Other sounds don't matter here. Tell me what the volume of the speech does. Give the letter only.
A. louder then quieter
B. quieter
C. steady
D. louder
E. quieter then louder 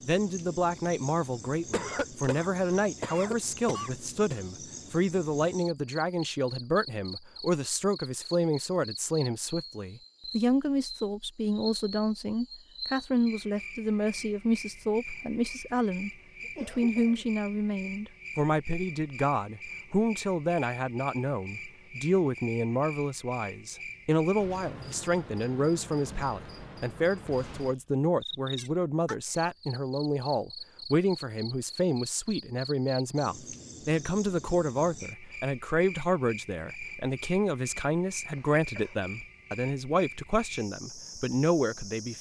C.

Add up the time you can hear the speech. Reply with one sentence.
The speech can be heard for 42 seconds in total.